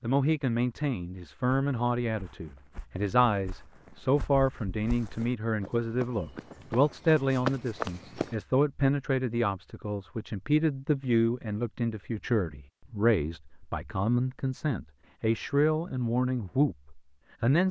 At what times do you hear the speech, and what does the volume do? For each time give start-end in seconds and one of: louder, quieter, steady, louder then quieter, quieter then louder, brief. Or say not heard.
0.0-17.6 steady.